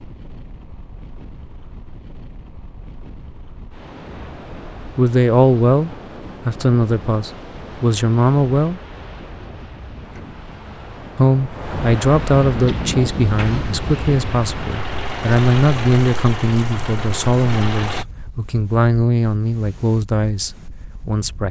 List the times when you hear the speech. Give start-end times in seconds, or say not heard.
4.8-8.8, 11.2-21.4.